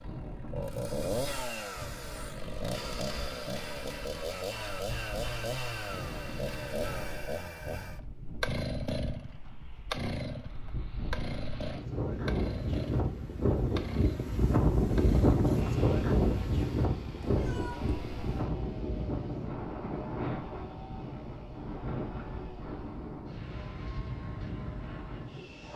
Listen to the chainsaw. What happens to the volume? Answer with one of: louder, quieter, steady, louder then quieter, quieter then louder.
quieter.